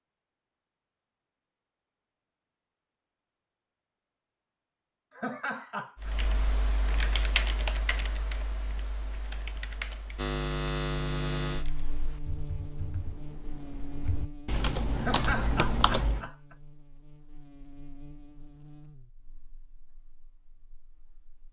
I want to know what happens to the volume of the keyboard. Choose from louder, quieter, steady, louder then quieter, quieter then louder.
quieter then louder.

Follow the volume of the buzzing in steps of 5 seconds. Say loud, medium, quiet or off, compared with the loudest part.
off, off, loud, quiet, quiet.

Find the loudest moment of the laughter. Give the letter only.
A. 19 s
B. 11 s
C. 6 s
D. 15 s
D.